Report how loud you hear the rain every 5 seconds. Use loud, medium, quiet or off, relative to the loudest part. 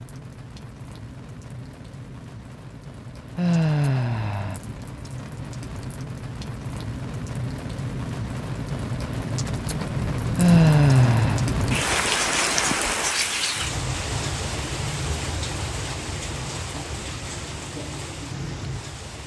quiet, medium, loud, medium.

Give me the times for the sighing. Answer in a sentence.
You can hear the sighing from 3.4 to 4.6 s and from 10.3 to 11.4 s.